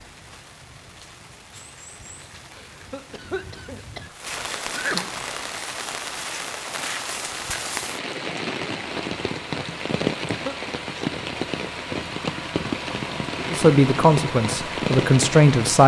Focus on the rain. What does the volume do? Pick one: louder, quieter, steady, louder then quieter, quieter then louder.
louder.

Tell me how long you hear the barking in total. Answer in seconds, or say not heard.
not heard.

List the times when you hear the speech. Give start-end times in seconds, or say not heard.
13.5-15.8.